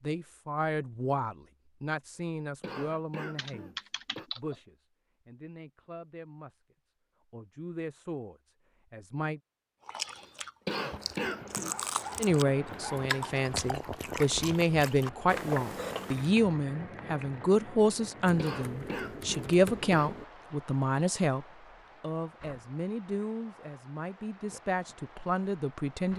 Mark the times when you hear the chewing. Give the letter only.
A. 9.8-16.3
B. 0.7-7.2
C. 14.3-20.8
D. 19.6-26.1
A.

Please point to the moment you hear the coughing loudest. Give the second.
11 s.